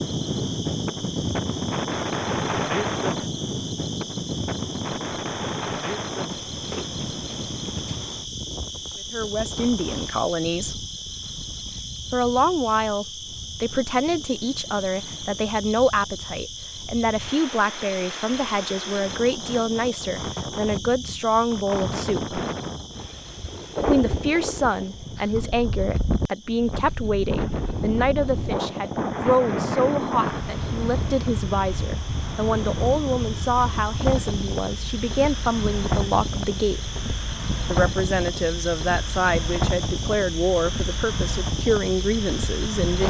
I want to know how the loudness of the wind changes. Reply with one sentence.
The volume of the wind goes down, then up.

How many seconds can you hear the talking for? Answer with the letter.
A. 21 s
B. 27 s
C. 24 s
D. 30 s
D.